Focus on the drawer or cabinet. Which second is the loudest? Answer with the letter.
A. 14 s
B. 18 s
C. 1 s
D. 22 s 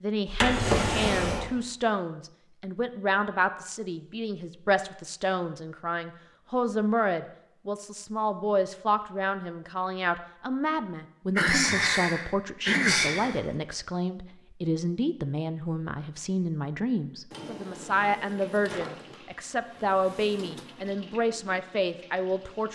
C.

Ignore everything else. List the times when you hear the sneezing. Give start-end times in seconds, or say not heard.
11.3-13.4.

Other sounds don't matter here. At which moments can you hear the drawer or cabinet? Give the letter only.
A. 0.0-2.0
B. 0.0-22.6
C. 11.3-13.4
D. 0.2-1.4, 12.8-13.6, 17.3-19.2
D.